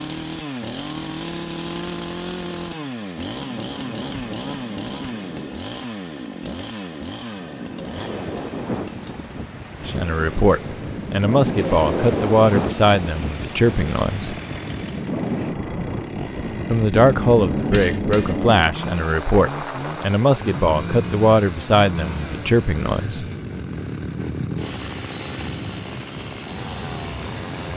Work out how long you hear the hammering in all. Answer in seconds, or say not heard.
4 s.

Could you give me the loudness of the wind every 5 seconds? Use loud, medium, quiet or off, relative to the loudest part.
off, medium, loud, loud, medium, medium.